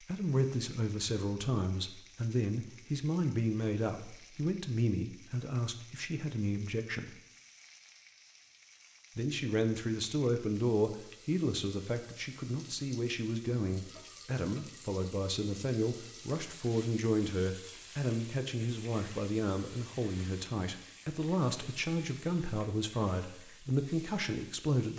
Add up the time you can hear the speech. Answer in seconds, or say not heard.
23 s.